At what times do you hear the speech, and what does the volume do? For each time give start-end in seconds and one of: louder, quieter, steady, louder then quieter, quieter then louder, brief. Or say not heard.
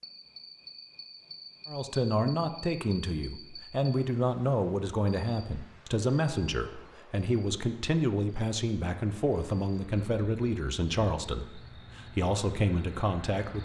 1.6-13.6 steady.